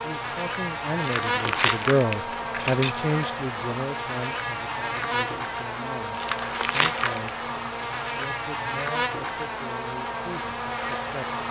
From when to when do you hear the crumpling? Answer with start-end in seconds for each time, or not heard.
0.9-3.0, 6.1-7.3.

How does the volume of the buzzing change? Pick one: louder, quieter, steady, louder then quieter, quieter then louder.
steady.